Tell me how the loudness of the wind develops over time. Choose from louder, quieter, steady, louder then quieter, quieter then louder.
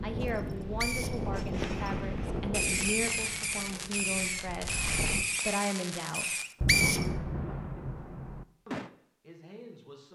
quieter.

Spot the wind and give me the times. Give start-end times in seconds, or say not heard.
0.0-5.2.